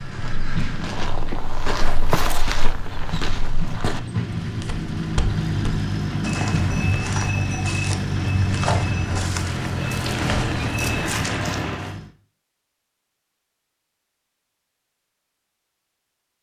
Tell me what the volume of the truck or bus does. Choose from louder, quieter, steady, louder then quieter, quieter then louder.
louder.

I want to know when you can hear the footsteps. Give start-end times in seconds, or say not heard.
0.0-11.5.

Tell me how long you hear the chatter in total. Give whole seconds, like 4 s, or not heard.
not heard.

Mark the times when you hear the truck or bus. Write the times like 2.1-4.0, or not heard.
0.0-12.1.